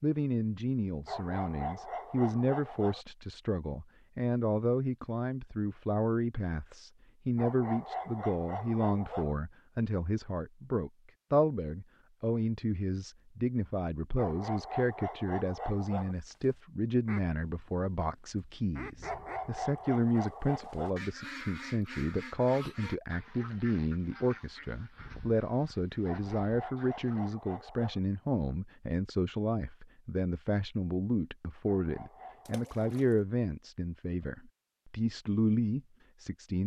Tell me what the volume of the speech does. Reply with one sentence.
The volume of the speech stays about the same.